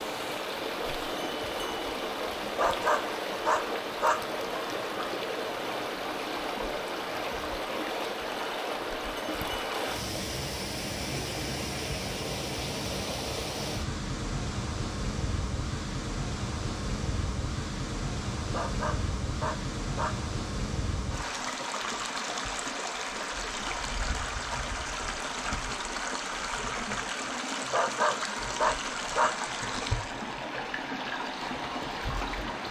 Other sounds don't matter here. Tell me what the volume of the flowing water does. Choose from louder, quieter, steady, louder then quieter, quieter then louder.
steady.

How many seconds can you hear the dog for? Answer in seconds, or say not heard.
5 s.